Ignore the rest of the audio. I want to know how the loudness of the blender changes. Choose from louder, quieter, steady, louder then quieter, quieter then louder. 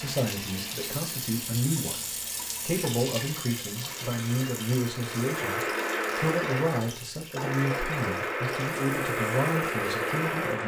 louder.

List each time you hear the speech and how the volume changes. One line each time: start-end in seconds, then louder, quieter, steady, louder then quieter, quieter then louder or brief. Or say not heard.
0.0-10.6 steady.